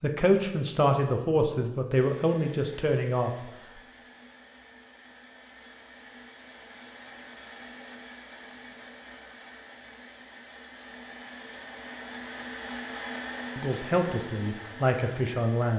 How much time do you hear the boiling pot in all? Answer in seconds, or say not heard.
not heard.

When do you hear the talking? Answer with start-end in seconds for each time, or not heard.
0.0-3.3, 13.6-15.7.